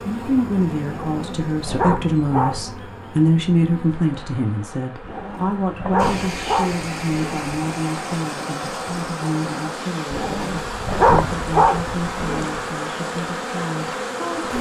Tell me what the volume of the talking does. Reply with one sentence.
The loudness of the talking goes down.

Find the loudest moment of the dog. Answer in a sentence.
The volume of the dog peaks at 11 seconds.